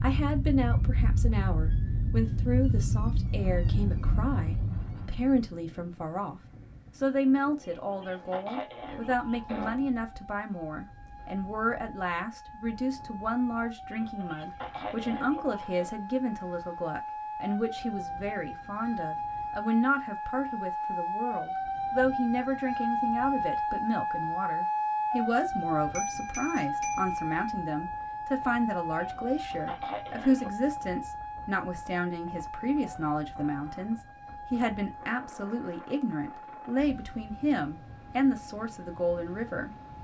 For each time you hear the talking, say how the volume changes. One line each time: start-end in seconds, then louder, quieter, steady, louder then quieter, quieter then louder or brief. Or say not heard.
0.0-39.8 steady.